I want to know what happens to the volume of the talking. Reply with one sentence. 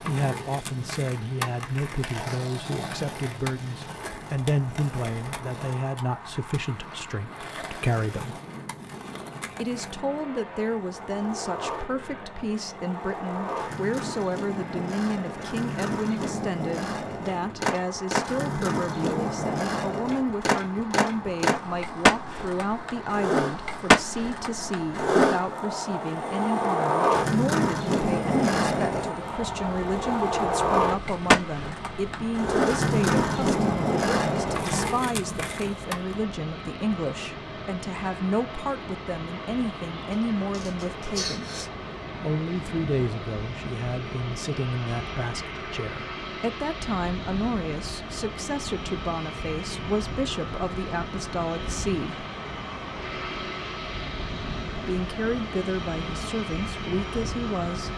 The loudness of the talking stays about the same.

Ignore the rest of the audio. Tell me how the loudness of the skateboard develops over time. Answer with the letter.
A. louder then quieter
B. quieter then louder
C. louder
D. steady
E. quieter
C.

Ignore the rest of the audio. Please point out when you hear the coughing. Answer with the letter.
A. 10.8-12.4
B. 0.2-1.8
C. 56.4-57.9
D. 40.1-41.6
D.